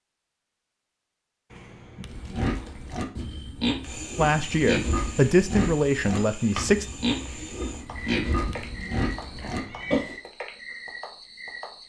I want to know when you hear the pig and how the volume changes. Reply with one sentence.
The pig can be heard from 2.0 to 10.2 s, at a steady volume.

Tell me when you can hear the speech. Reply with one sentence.
You can hear the speech from 4.2 to 6.8 s.